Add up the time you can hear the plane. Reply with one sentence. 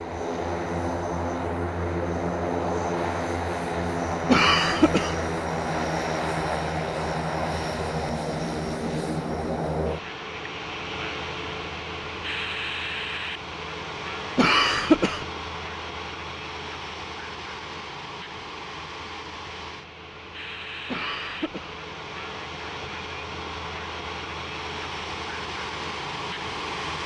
You can hear the plane for 27 seconds altogether.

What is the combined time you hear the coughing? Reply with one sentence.
You can hear the coughing for 3 seconds altogether.